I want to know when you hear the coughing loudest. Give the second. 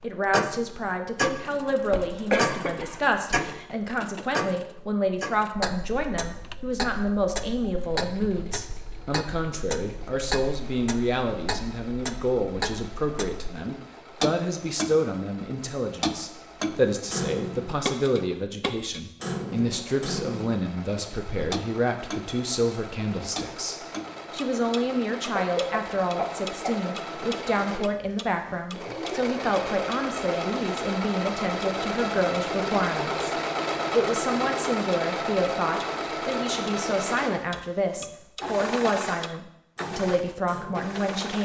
2 s.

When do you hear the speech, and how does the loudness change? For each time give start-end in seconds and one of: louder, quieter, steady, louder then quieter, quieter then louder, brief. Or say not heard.
0.0-41.4 steady.